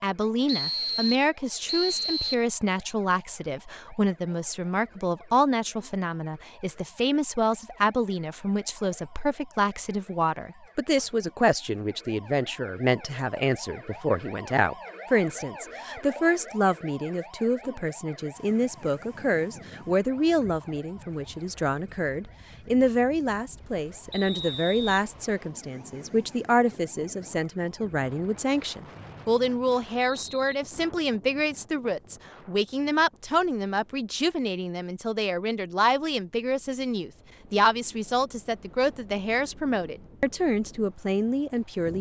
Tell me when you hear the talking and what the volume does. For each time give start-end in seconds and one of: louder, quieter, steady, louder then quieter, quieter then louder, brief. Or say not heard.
0.0-41.9 steady.